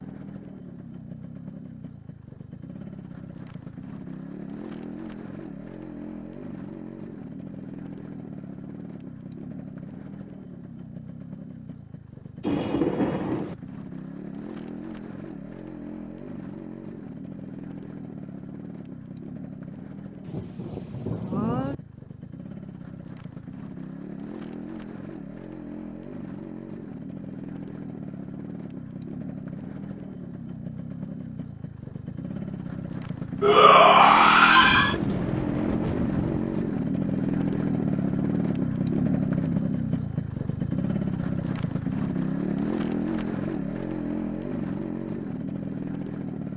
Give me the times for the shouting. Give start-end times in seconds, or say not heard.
33.4-35.0.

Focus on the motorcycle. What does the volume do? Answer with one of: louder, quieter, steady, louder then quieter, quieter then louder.
louder.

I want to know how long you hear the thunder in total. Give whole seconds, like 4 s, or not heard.
5 s.